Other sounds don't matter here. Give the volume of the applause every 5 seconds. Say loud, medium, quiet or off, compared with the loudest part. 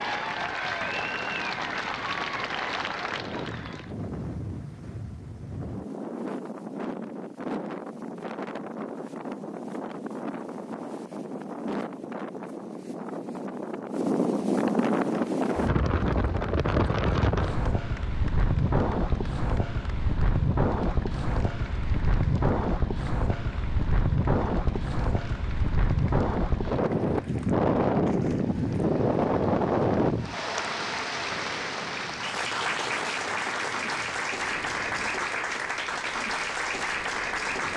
loud, off, off, quiet, quiet, quiet, loud, loud.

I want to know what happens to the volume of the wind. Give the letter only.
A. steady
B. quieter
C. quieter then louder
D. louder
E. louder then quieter
E.